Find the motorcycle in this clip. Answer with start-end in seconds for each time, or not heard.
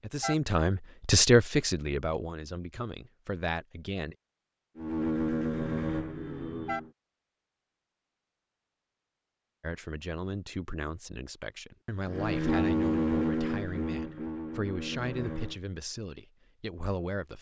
4.8-7.0, 12.1-15.6.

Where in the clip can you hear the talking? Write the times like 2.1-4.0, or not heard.
0.0-4.2, 9.6-17.3.